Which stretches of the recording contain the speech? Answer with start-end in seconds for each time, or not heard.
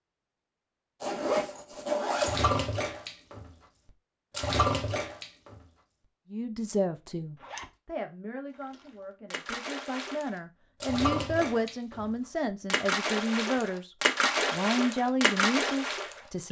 6.3-16.4.